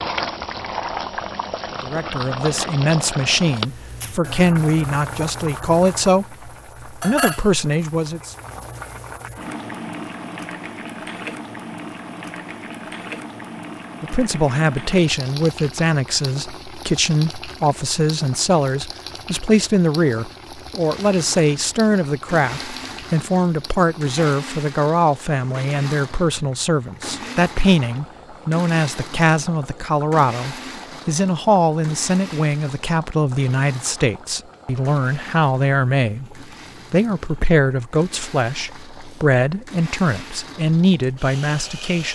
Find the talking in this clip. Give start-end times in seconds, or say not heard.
1.8-8.3, 14.0-42.1.